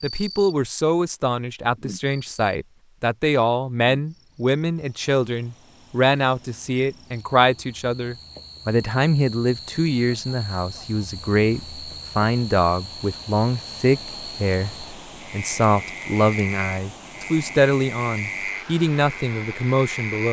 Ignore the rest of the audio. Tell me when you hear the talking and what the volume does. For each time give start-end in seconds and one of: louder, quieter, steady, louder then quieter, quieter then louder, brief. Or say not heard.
0.0-20.2 steady.